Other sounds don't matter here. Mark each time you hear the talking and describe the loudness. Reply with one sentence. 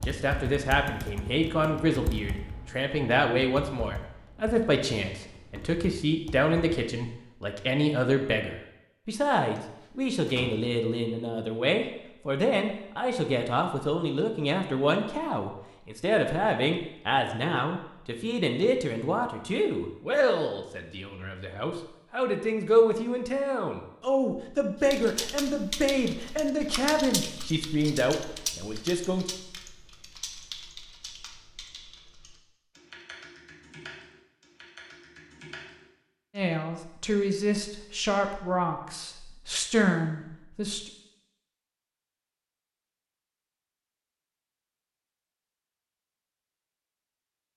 You can hear the talking from 0.1 to 29.2 s, at a steady volume; and from 36.4 to 40.9 s, getting quieter then louder.